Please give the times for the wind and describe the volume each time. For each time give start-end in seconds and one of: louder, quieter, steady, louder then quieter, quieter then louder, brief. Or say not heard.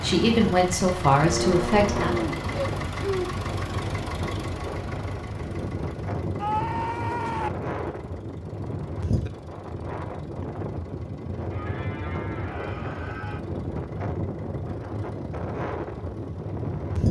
0.0-17.0 steady.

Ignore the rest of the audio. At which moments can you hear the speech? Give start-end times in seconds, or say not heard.
0.0-2.1.